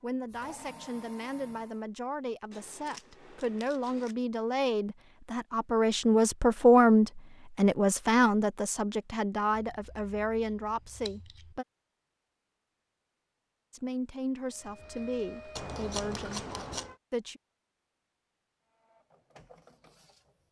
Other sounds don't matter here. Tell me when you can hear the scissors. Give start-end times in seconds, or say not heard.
2.5-4.2, 9.5-11.6, 15.6-16.9.